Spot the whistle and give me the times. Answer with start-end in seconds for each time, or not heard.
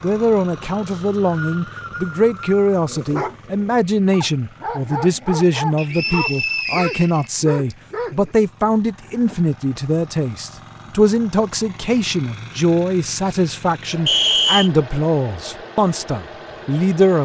0.8-2.5, 5.8-7.8, 14.1-14.7.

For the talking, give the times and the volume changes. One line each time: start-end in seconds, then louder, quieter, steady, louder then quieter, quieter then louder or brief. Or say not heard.
0.0-17.2 steady.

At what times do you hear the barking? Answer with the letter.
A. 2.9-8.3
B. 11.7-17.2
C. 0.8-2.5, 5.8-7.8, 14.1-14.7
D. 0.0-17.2
A.